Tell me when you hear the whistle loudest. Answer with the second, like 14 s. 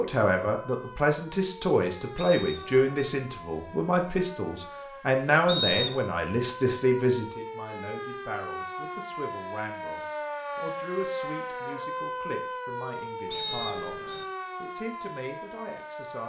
6 s.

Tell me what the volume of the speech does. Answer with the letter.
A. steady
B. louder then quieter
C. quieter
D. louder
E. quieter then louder
C.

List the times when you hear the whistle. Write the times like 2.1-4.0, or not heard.
2.1-3.1, 5.5-6.0, 13.3-14.2.